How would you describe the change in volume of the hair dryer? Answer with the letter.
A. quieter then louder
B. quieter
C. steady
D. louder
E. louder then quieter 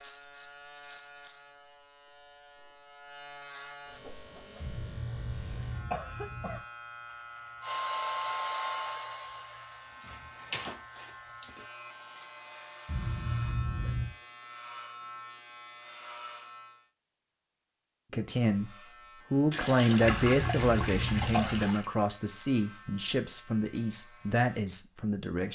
B.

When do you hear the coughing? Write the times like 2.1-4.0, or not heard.
4.6-6.6, 12.8-14.1, 20.2-21.7.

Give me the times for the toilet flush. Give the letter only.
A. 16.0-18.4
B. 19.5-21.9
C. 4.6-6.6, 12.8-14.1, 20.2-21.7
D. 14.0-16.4
B.